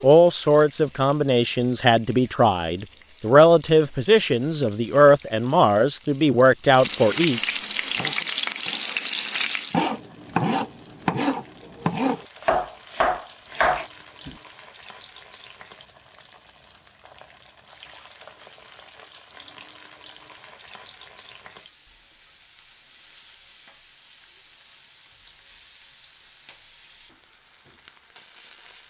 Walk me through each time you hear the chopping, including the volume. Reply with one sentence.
You can hear the chopping from 7.8 to 14.3 s, getting louder.